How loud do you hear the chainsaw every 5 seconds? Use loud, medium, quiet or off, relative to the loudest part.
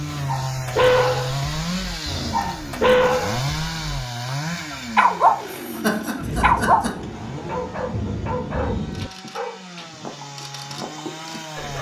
loud, medium, medium.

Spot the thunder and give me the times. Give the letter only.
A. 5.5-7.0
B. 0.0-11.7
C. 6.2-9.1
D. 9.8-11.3
C.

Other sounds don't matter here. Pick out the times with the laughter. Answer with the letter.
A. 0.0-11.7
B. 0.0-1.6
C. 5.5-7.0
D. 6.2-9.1
C.